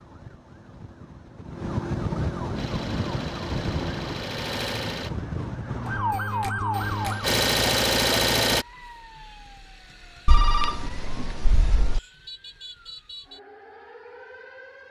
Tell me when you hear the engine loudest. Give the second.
8 s.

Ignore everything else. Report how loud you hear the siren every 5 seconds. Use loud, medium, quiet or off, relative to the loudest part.
loud, loud, quiet.